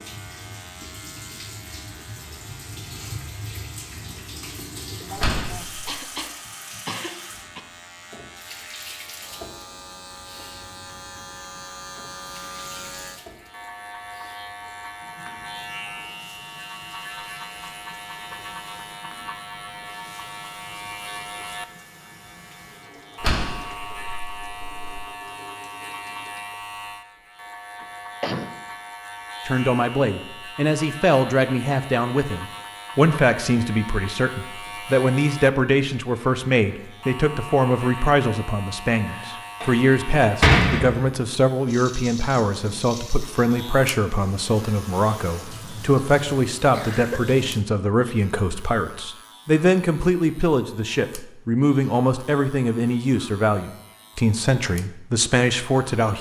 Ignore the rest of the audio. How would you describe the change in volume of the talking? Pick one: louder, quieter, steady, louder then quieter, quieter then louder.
steady.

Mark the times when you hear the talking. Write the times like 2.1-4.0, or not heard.
29.4-56.1.